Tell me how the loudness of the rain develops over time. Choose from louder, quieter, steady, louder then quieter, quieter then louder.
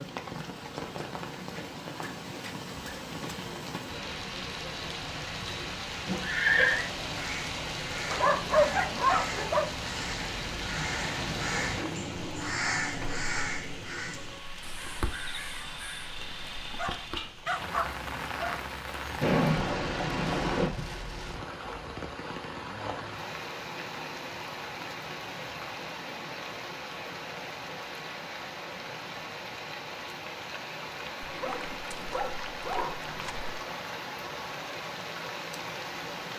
steady.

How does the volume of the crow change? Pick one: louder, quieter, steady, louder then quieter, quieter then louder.
louder then quieter.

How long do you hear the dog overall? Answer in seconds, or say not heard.
6 s.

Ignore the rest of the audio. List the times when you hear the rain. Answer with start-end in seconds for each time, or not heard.
0.0-36.3.